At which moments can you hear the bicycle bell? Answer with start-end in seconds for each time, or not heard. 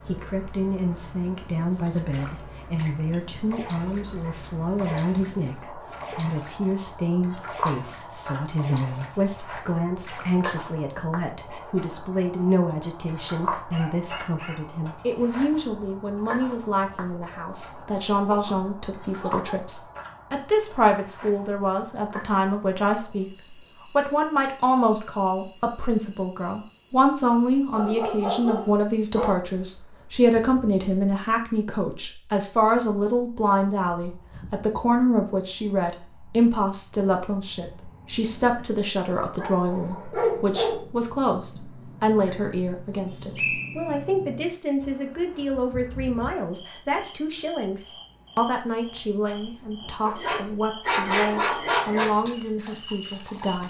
not heard.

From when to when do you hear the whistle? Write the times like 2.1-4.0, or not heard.
43.4-44.0.